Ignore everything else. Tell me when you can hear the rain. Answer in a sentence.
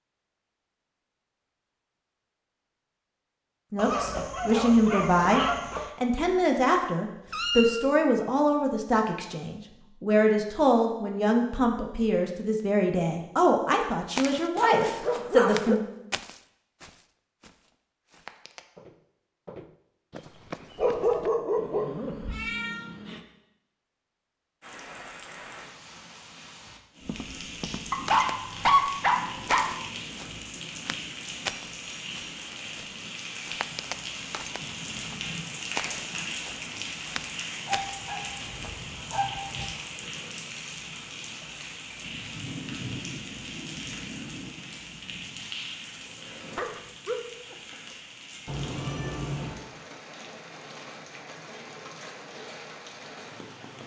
You can hear the rain from 24.6 to 53.8 s.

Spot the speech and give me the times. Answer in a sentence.
You can hear the speech from 3.7 to 15.8 s.